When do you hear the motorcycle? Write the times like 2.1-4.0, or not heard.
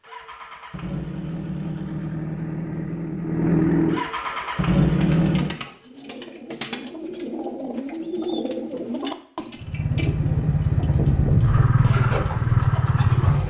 0.0-5.5, 9.6-13.4.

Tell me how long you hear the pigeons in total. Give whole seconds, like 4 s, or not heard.
9 s.